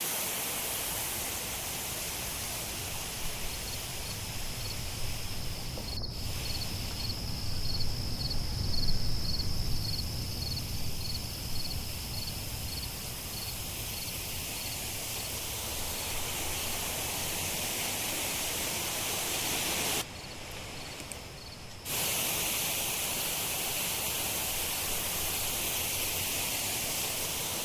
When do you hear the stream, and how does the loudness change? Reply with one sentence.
You can hear the stream from 0.0 to 27.5 s, getting quieter then louder.